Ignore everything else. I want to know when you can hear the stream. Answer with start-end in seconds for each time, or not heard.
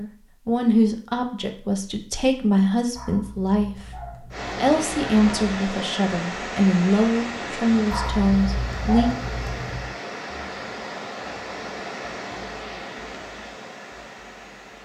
4.3-14.7.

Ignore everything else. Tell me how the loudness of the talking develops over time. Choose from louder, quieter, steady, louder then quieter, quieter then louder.
steady.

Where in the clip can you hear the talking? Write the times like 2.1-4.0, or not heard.
0.0-9.2.